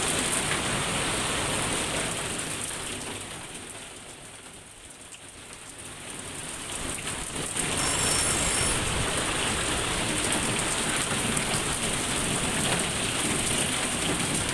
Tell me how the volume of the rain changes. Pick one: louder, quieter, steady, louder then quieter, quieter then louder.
quieter then louder.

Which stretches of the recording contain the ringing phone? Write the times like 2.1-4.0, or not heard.
7.8-8.8.